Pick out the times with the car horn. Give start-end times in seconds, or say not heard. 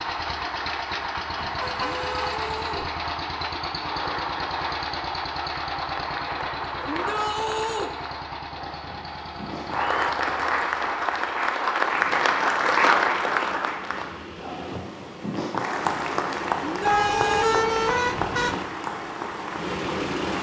1.4-2.7, 16.9-18.6.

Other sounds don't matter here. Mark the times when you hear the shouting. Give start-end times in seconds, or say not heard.
1.8-2.9, 6.8-7.9, 16.6-17.6.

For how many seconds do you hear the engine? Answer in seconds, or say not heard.
20 s.